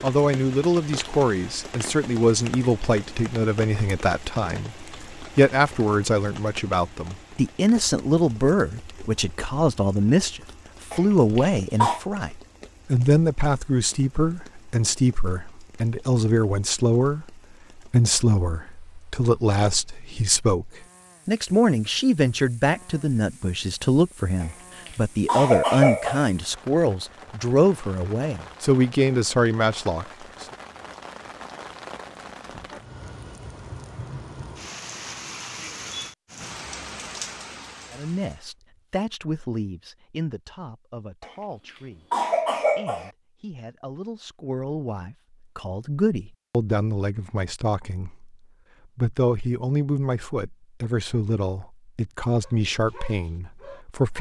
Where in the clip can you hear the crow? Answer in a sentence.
The crow can't be heard in this clip.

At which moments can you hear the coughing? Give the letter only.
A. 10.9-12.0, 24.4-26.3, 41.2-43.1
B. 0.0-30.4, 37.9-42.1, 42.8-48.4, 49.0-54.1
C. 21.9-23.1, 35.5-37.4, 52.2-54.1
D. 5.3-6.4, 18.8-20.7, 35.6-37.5
A.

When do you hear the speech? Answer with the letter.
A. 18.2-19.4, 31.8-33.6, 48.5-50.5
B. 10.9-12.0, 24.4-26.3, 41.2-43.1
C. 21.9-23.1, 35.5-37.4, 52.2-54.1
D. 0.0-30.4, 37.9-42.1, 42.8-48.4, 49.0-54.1
D.